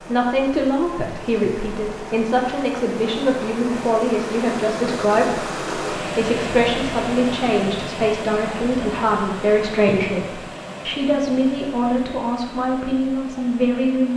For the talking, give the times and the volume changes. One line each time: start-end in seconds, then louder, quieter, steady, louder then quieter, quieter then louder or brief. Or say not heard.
0.0-14.1 steady.